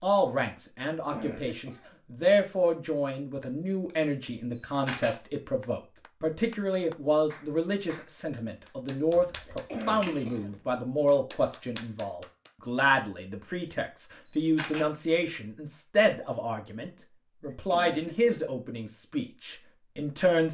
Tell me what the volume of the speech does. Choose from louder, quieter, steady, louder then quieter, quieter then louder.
steady.